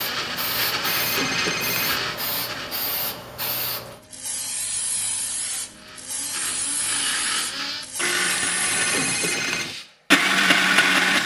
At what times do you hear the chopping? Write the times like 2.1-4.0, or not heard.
not heard.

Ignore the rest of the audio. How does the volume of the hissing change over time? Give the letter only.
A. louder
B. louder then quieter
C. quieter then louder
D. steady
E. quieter
D.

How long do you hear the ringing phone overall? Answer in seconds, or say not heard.
2 s.